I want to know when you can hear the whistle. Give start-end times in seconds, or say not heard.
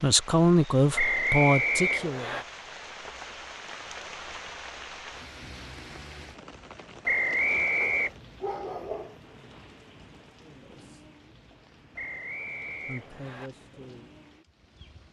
0.9-2.5, 7.0-8.1, 11.9-13.5.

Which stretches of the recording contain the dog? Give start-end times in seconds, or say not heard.
7.8-9.2.